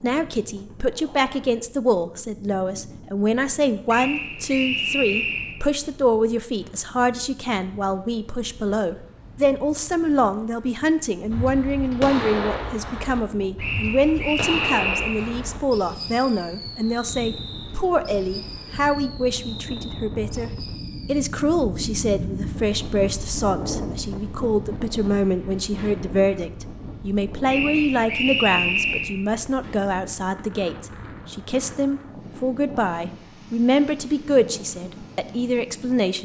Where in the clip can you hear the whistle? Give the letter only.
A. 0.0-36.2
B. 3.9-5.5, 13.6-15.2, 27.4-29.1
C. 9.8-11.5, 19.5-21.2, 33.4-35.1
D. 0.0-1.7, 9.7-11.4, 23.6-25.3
B.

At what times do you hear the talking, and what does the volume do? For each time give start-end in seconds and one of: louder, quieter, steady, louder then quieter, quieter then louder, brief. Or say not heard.
0.0-36.2 steady.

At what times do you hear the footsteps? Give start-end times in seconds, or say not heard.
not heard.